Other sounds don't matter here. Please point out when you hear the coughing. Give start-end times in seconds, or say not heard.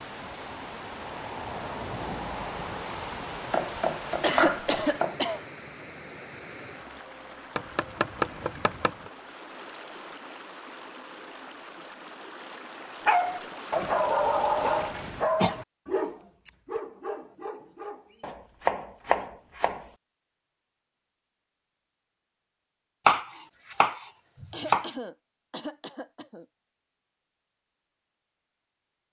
4.2-5.4, 14.6-15.6, 24.5-26.4.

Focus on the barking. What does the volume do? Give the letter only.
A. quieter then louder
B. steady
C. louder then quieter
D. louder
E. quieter
E.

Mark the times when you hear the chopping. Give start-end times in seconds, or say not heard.
3.5-5.2, 7.5-9.1, 18.2-19.9, 23.1-24.9.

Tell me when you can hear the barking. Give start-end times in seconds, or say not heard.
13.1-18.3.